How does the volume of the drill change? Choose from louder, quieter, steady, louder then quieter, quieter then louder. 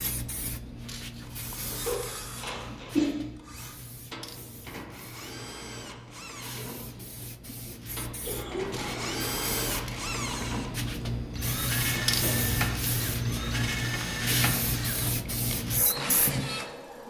louder.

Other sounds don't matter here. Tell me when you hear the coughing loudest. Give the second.
3 s.